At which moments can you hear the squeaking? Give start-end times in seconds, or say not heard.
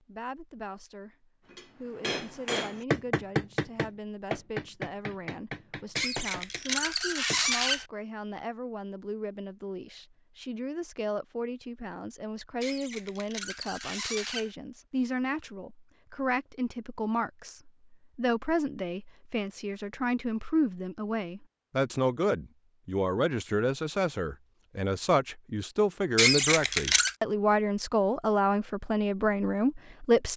6.0-7.8, 12.6-14.5, 26.1-27.2.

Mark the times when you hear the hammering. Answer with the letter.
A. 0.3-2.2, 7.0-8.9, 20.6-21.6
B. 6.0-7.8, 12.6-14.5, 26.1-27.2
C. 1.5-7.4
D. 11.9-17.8
C.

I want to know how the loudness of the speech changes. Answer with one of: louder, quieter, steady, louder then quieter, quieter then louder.
louder.